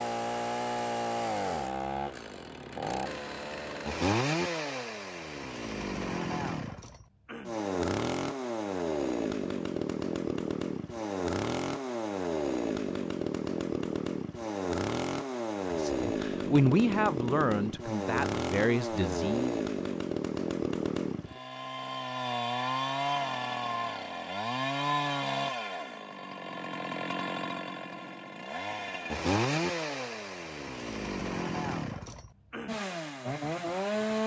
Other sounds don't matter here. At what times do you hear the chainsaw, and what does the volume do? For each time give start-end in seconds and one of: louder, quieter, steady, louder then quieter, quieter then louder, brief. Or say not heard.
0.0-34.2 steady.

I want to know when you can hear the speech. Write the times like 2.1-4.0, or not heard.
15.7-19.6.